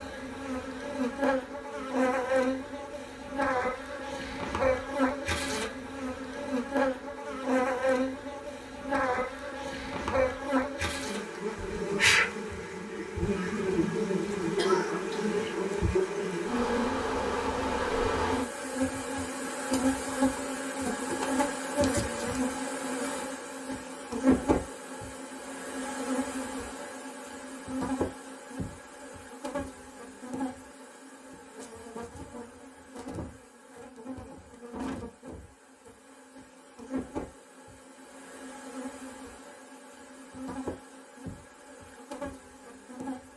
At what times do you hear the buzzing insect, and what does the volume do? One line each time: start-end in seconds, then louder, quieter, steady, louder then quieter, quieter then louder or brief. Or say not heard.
0.0-43.3 quieter.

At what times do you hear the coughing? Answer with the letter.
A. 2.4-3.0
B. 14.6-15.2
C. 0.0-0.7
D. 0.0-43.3
B.